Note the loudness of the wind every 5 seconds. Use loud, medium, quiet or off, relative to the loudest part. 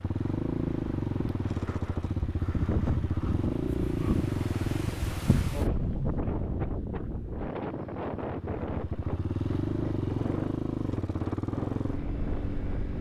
loud, loud, medium.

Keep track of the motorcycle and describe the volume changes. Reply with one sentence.
The loudness of the motorcycle goes down, then up.